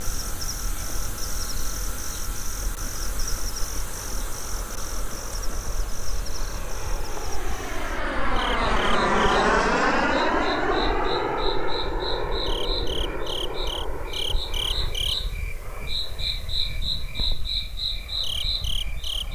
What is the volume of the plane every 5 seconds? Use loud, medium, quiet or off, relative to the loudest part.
quiet, loud, loud, quiet.